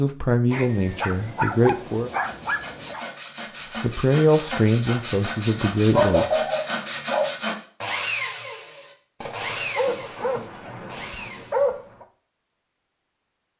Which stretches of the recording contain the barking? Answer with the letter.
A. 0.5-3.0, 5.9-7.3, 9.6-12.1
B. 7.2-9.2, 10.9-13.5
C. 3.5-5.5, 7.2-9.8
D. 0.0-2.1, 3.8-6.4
A.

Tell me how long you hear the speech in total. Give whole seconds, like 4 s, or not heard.
5 s.